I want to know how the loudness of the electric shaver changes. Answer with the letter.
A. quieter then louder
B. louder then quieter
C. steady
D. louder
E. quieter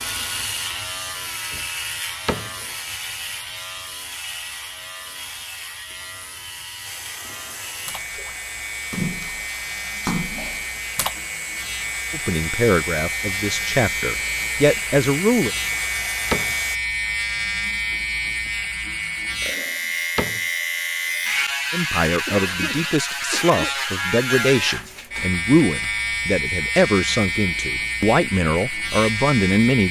D.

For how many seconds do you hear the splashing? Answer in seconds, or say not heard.
3 s.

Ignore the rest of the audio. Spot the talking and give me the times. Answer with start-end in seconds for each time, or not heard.
12.1-15.5, 21.7-29.8.